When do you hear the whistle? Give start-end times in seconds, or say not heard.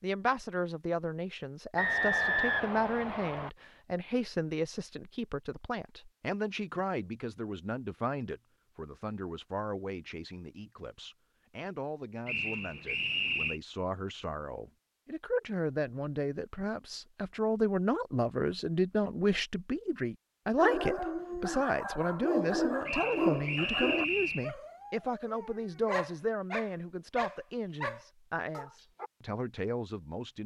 1.8-3.5, 12.2-13.6, 22.9-24.5.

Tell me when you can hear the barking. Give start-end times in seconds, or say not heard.
20.6-29.1.